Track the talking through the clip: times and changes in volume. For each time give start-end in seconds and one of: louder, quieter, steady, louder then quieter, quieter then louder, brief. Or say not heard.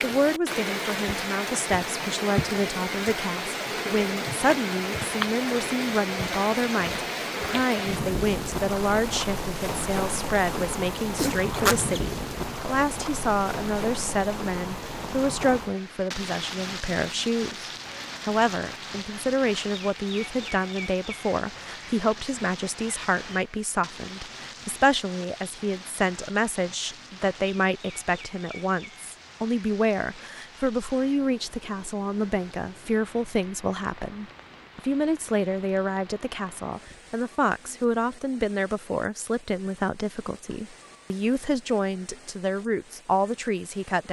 0.0-44.0 steady.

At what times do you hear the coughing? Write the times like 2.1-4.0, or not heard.
11.2-12.0.